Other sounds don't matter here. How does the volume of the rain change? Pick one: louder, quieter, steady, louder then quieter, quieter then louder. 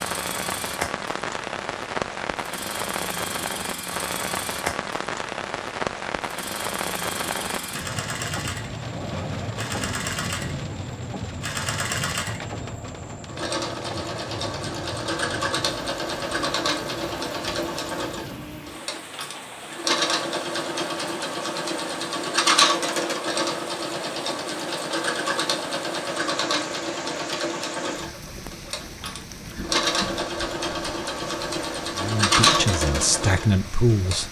quieter.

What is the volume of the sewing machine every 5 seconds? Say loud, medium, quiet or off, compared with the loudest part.
medium, medium, medium, loud, loud, loud, loud.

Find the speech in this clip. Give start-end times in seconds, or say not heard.
31.9-34.2.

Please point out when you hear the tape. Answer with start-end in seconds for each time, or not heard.
not heard.